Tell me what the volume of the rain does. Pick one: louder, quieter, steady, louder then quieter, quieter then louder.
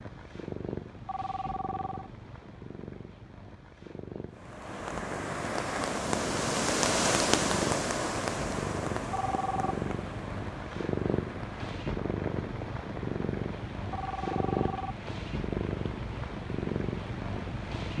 quieter.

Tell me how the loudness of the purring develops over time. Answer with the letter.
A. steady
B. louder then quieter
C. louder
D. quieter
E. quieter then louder
C.